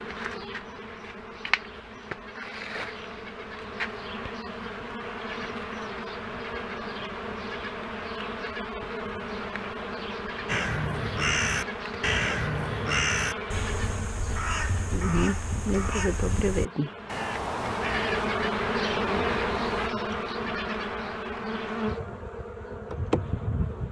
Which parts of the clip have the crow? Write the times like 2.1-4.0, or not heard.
10.4-19.9.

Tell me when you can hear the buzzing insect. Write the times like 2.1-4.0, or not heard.
0.0-23.8.